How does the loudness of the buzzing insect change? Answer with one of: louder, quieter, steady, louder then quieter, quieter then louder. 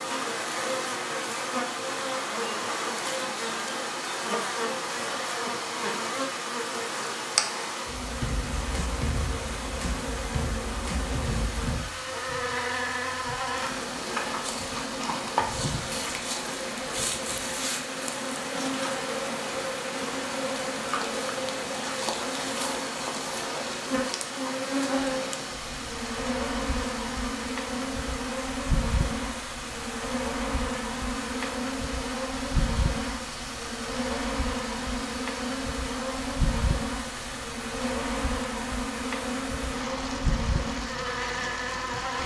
steady.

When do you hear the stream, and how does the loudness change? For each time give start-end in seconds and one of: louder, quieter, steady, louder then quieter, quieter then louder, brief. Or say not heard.
0.0-42.2 steady.